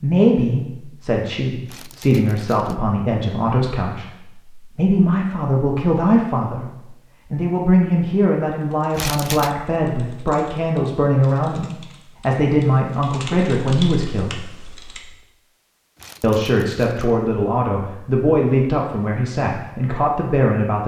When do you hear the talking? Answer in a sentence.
You can hear the talking from 0.0 to 6.7 s, from 7.3 to 14.3 s and from 16.2 to 20.8 s.